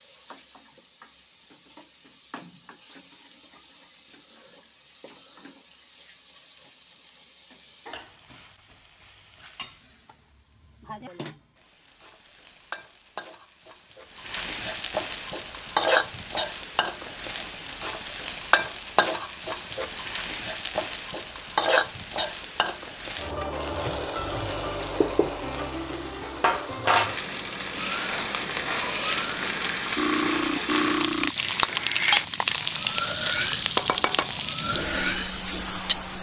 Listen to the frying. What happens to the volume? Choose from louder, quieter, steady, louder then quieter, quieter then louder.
louder.